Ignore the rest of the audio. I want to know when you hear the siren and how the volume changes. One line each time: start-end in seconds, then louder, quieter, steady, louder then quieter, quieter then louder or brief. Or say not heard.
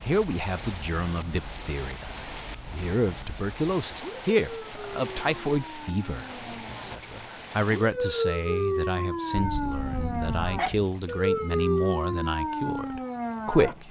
0.0-13.8 louder.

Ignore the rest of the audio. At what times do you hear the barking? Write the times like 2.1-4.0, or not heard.
9.3-10.9.